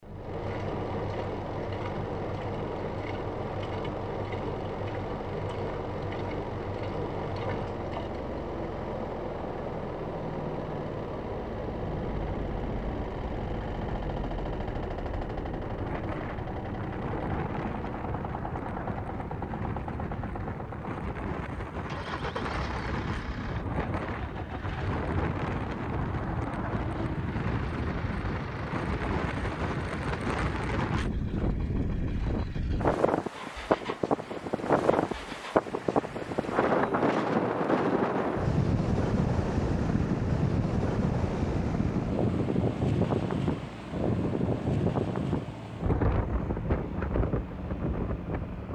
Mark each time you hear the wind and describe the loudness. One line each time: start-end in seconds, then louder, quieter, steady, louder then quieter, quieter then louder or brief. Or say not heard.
11.8-48.7 louder.